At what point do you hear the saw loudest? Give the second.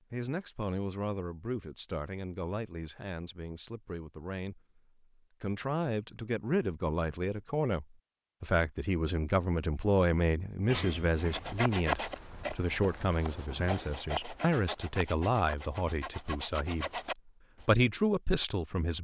12 s.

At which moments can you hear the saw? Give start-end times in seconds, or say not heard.
11.2-17.6.